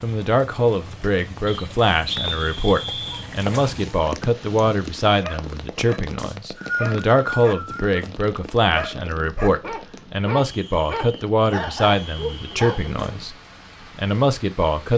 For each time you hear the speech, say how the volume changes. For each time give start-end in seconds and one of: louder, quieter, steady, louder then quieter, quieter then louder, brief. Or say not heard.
0.0-13.3 steady
13.9-14.9 brief.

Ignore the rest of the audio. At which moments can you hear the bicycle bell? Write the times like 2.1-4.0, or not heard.
not heard.